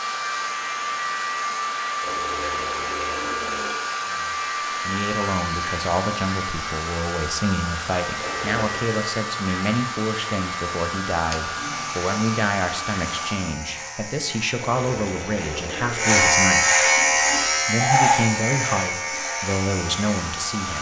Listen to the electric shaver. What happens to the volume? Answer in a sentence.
The volume of the electric shaver goes up.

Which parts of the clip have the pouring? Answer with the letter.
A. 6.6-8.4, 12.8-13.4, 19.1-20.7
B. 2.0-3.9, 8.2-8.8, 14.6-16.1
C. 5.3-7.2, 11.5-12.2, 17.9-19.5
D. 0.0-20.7
B.